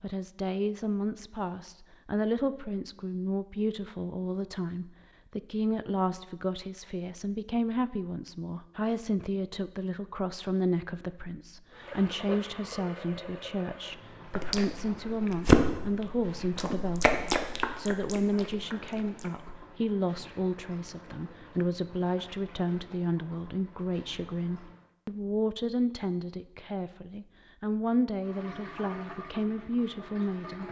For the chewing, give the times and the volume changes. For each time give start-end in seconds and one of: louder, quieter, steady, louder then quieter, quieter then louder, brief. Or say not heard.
14.3-19.4 quieter.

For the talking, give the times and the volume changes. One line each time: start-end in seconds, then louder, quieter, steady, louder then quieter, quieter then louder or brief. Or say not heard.
0.0-30.6 steady.